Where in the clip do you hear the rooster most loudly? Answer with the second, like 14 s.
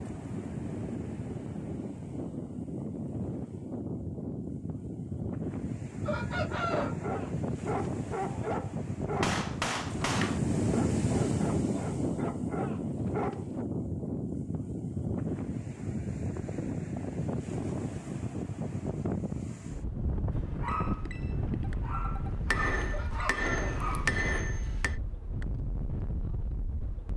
7 s.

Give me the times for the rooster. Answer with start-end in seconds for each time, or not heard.
6.0-7.1, 22.9-23.7.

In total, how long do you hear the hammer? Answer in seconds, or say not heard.
4 s.